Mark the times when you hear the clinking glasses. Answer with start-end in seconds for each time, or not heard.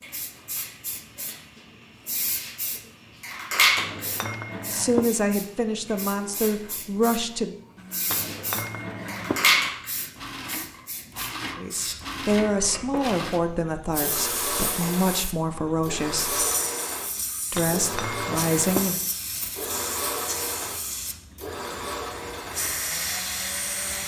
3.8-5.0, 8.1-9.3, 17.6-18.8.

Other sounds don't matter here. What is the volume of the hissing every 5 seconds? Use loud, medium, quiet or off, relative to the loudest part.
loud, loud, medium, medium, medium.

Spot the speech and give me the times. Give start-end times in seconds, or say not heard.
4.7-7.5, 11.6-16.4, 17.5-19.0.